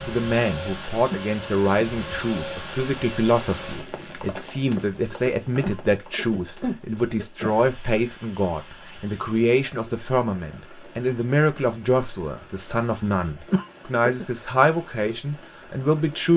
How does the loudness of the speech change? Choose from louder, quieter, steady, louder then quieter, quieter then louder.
steady.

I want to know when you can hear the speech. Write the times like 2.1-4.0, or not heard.
0.1-16.3.